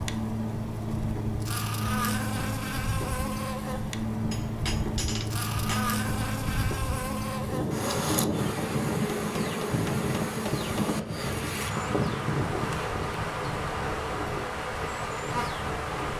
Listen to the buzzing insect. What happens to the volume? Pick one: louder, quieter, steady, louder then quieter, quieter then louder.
steady.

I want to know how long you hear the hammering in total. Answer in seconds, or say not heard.
4 s.